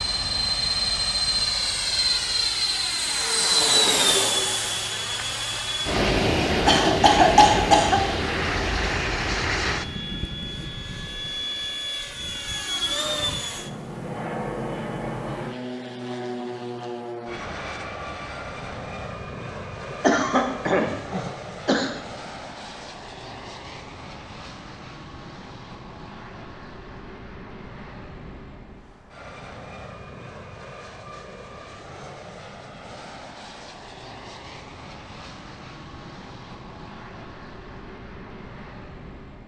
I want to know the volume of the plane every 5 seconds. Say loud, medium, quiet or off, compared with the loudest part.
loud, loud, medium, medium, quiet, quiet, quiet, quiet.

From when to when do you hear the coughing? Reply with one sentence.
The coughing can be heard from 6.7 to 8.0 s and from 19.9 to 21.9 s.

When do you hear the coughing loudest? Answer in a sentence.
The loudest moment of the coughing is at 7 seconds.